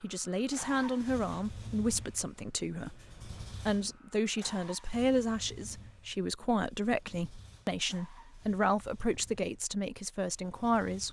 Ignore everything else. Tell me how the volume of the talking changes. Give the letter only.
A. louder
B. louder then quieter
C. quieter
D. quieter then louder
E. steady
E.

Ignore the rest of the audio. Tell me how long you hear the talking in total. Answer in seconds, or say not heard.
11 s.